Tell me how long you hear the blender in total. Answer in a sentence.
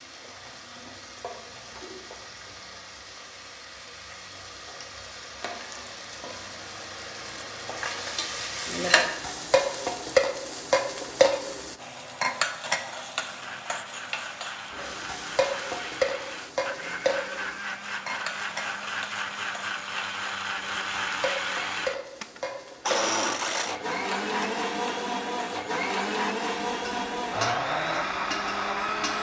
The blender can be heard for 16 seconds in total.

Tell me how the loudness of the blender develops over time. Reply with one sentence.
The loudness of the blender goes up.